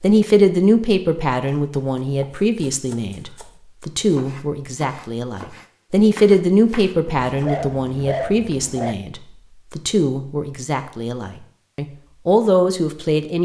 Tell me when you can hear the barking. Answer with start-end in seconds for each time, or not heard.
7.0-8.9.